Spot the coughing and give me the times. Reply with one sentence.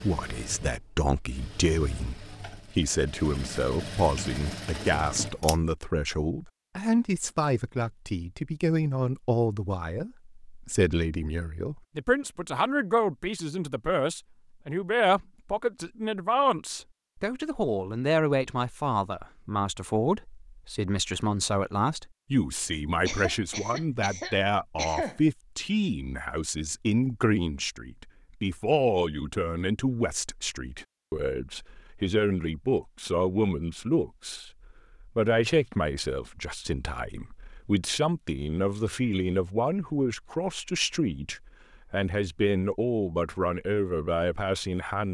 The coughing can be heard from 23.1 to 25.2 s.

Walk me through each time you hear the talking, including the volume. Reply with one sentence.
The talking can be heard from 0.0 to 45.1 s, at a steady volume.